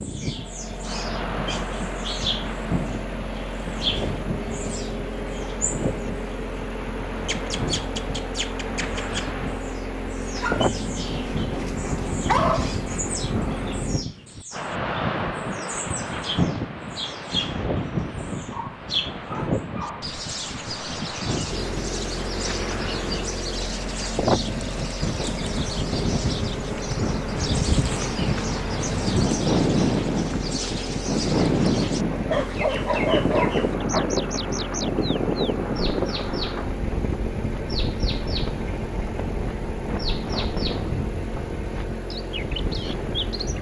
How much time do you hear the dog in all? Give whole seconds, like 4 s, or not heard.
6 s.